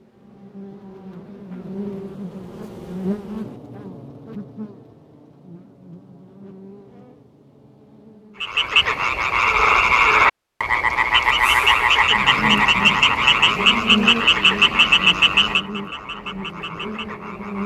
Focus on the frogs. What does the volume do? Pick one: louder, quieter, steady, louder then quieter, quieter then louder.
quieter.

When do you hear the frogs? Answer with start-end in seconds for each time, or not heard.
8.4-17.6.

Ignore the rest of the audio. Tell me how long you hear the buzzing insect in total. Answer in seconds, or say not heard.
14 s.